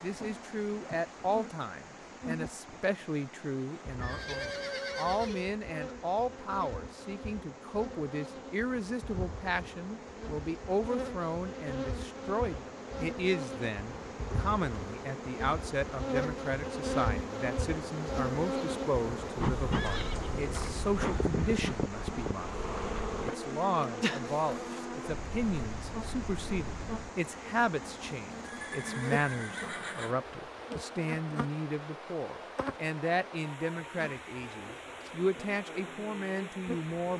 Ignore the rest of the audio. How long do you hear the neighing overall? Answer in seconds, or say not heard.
5 s.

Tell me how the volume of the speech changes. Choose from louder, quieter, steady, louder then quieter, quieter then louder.
steady.